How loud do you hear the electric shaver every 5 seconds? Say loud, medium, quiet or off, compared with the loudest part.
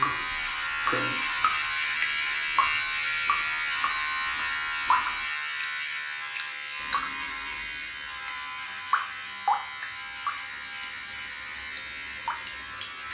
loud, medium, medium.